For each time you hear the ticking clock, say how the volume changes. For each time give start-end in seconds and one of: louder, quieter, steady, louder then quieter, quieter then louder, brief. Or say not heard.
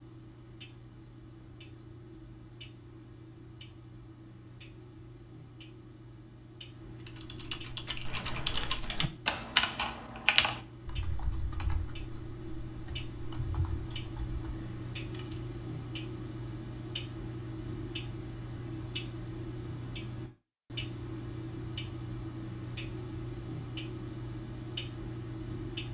0.0-25.8 louder.